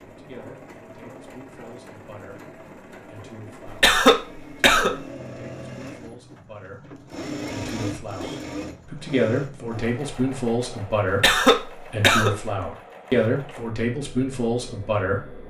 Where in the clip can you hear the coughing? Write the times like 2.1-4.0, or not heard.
3.6-4.9, 11.2-12.3.